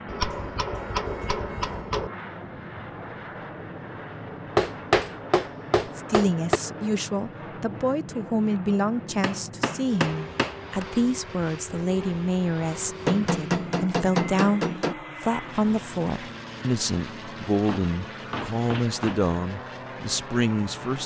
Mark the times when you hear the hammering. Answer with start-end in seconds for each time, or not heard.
0.1-2.1, 4.5-6.6, 9.2-10.8, 13.1-14.9, 17.6-19.2.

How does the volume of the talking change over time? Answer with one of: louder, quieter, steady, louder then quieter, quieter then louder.
steady.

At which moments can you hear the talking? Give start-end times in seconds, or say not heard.
6.0-21.0.